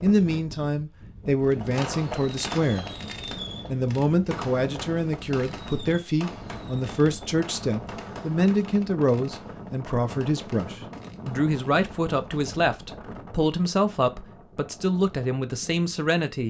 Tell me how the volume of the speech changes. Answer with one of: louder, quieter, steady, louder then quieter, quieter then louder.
steady.